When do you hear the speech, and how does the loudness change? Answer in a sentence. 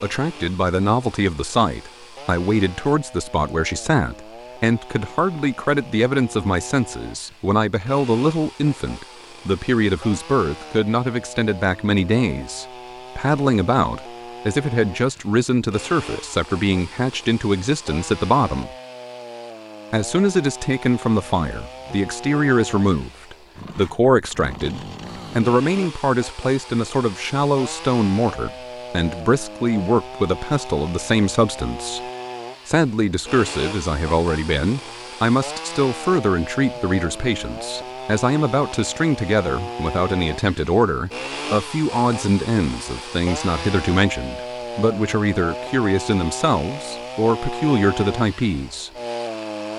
You can hear the speech from 0.0 to 18.7 s, at a steady volume; from 19.9 to 32.0 s, at a steady volume; and from 32.6 to 48.9 s, at a steady volume.